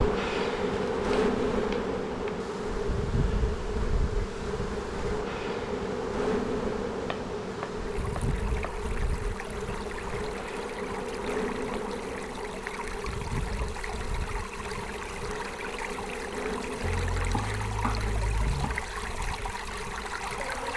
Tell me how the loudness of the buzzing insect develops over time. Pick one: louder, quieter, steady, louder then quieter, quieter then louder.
quieter.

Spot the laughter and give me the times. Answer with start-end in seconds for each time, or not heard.
not heard.